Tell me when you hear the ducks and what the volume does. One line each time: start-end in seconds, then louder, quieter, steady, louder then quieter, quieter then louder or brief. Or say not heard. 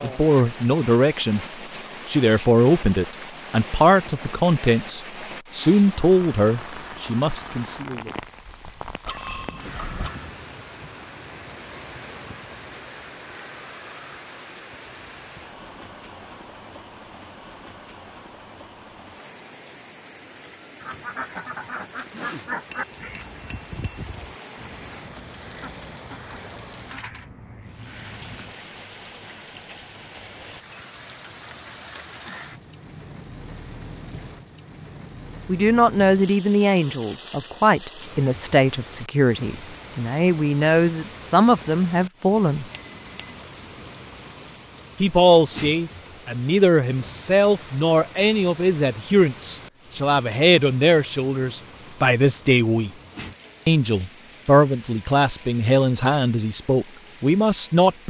20.8-28.6 quieter.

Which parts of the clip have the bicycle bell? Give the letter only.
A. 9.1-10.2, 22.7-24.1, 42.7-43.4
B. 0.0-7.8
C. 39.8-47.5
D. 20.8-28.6
A.